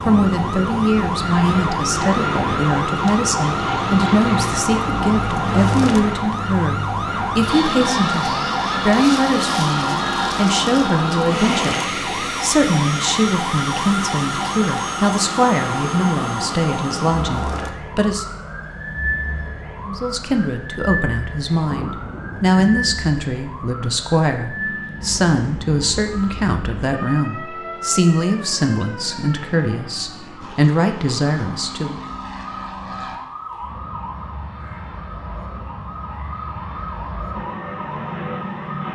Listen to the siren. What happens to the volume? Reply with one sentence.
The volume of the siren goes down.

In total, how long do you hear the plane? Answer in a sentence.
You can hear the plane for 39 seconds altogether.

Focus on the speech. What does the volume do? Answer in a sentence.
The volume of the speech stays about the same.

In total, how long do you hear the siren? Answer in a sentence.
The siren can be heard for 39 seconds in total.